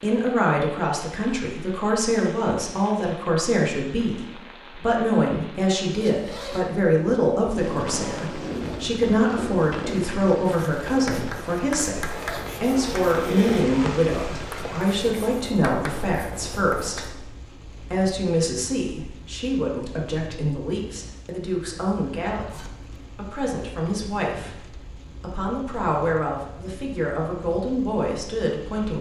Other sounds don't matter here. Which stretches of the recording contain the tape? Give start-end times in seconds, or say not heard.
7.4-9.0.